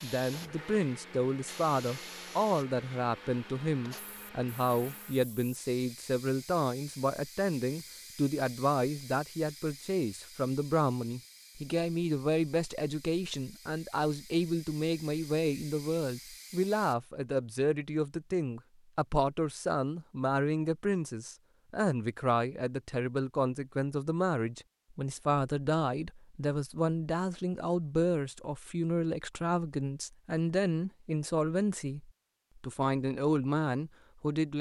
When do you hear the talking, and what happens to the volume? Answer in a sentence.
The talking can be heard from 0.0 to 34.5 s, at a steady volume.